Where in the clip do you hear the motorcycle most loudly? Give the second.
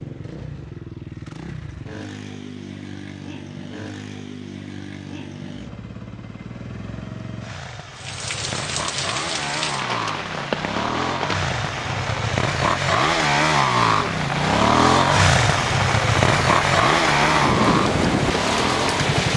15 s.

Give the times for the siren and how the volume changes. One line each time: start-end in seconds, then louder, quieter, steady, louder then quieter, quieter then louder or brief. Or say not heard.
not heard.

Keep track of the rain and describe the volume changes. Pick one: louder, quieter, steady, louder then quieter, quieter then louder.
louder.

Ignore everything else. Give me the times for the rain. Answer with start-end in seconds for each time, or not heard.
8.0-19.3.